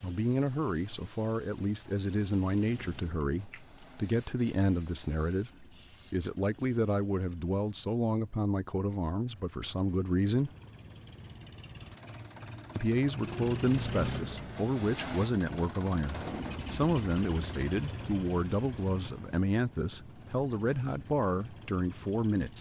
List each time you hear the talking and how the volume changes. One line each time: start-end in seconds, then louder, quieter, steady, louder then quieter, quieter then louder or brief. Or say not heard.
0.0-10.5 steady
12.8-22.5 steady.